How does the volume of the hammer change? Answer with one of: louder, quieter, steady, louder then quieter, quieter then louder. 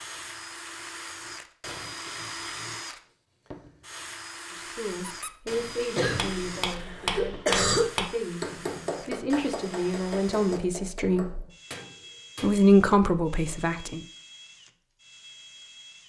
quieter.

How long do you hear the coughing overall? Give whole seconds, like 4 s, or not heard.
2 s.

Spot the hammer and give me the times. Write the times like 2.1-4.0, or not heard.
6.0-12.7.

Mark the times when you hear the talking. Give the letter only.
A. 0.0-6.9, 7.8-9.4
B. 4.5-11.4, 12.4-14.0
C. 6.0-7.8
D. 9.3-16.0
B.